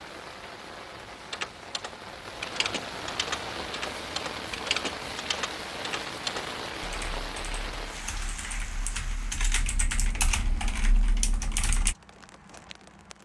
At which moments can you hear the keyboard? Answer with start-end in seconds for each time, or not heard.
1.1-11.9.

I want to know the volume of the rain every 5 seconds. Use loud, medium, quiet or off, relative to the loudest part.
loud, loud, quiet.